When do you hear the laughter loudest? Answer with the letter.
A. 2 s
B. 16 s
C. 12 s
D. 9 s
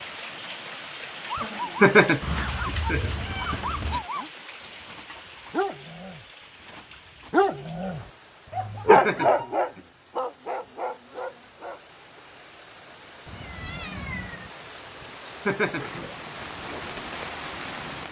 A.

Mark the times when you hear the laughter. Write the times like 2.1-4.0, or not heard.
1.4-3.6, 8.4-9.8, 15.0-16.0.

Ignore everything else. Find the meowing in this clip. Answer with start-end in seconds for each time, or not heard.
2.2-4.0, 13.2-14.5.